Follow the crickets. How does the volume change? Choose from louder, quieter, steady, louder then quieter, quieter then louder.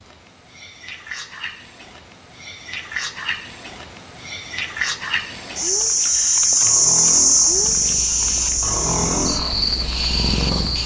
louder then quieter.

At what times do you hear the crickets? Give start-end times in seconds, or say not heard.
0.0-10.8.